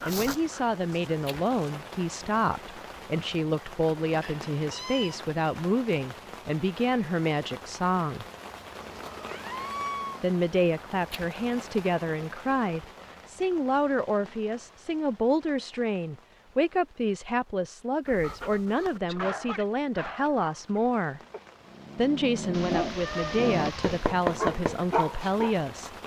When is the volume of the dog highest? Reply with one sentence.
The loudest moment of the dog is at 24 seconds.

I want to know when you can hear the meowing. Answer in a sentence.
The meowing can be heard from 4.2 to 5.2 s, from 8.8 to 10.3 s and from 22.5 to 24.1 s.